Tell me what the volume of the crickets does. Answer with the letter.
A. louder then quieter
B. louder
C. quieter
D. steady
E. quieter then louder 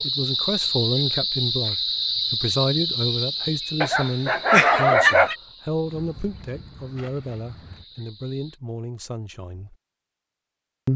C.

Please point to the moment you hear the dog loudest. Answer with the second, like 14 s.
5 s.